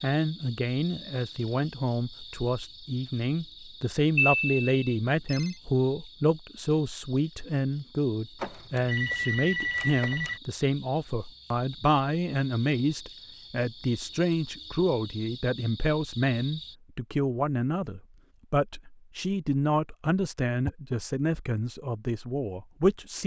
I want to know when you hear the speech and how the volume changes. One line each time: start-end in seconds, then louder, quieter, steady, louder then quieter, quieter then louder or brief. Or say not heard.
0.0-23.2 steady.